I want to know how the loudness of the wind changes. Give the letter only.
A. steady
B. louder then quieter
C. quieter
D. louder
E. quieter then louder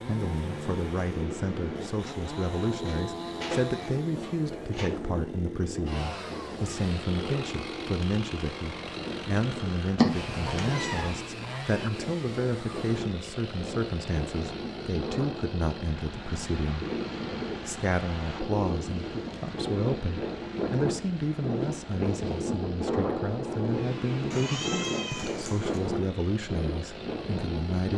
D.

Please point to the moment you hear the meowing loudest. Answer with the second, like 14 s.
10 s.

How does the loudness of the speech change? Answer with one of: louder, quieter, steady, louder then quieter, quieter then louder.
steady.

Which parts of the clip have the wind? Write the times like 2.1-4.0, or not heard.
0.0-27.9.